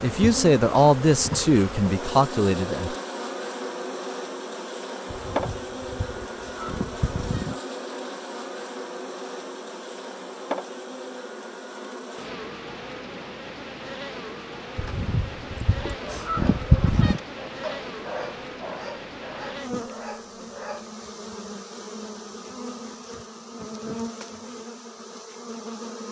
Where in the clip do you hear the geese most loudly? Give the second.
17 s.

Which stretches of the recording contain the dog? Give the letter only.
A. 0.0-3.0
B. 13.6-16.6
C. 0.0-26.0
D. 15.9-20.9
D.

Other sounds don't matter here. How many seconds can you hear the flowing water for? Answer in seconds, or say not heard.
not heard.